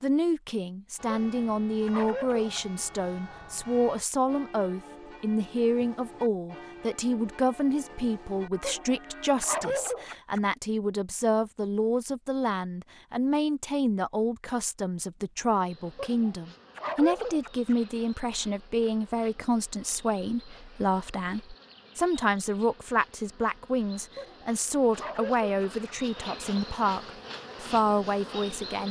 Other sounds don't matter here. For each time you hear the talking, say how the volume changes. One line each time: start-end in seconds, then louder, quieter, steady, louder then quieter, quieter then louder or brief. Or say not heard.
0.0-28.8 steady.